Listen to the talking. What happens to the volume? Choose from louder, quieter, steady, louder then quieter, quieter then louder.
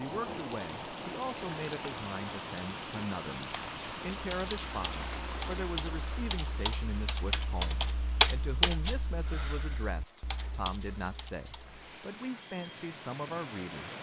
steady.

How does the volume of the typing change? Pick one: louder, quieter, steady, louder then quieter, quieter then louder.
louder then quieter.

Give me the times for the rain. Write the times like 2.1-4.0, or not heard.
0.0-13.9.